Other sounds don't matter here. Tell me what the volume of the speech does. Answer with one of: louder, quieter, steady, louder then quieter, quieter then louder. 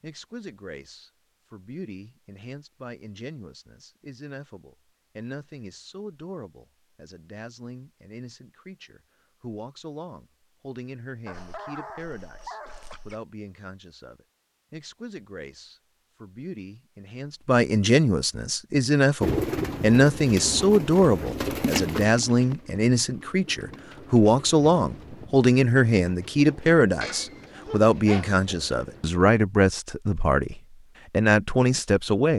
louder.